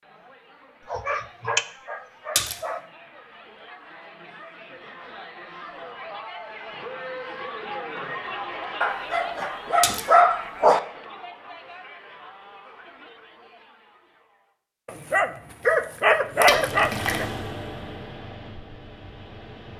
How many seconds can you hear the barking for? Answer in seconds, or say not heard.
6 s.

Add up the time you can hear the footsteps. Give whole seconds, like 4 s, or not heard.
not heard.